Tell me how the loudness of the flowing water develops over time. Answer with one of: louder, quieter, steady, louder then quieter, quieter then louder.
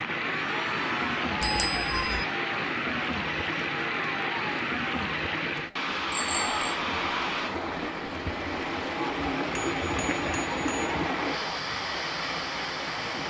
steady.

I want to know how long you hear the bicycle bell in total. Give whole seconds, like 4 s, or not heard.
3 s.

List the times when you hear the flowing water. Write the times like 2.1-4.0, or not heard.
0.0-13.2.